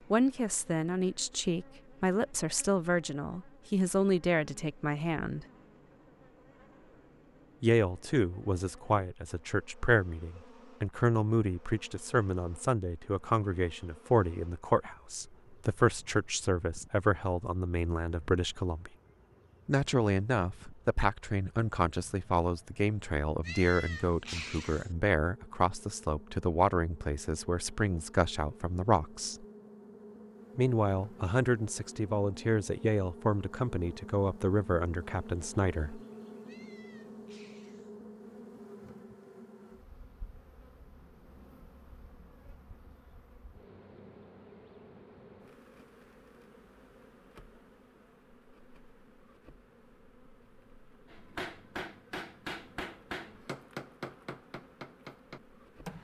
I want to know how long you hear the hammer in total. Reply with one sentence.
The hammer can be heard for 5 seconds in total.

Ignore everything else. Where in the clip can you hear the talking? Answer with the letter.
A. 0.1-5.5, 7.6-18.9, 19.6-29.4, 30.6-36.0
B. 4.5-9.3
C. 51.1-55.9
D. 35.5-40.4
A.